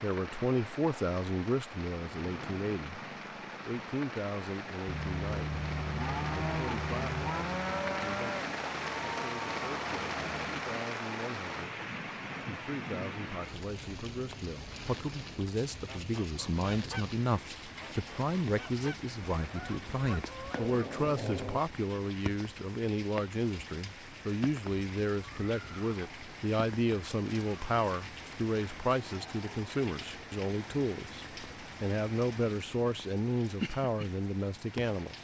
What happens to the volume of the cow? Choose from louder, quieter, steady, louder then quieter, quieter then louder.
quieter.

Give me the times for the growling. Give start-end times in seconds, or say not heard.
2.1-3.8, 20.5-21.6.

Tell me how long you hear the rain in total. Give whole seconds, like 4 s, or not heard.
35 s.